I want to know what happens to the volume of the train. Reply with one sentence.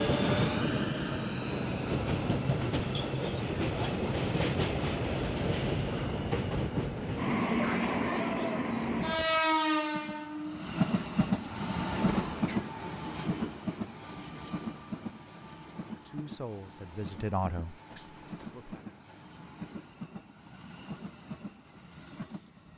The volume of the train goes down.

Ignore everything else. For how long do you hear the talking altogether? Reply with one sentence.
The talking can be heard for 3 seconds in total.